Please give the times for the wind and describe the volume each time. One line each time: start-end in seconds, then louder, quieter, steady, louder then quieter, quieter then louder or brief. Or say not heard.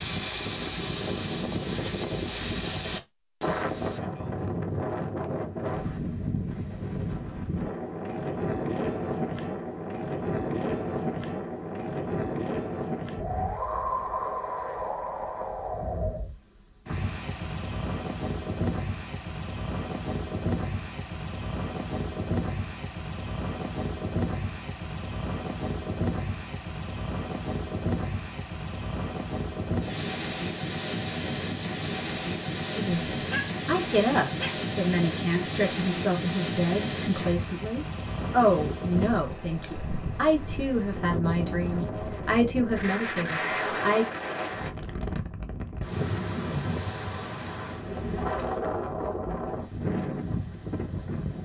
0.0-51.4 steady.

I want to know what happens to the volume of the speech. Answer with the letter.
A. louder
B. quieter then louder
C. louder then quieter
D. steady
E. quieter
D.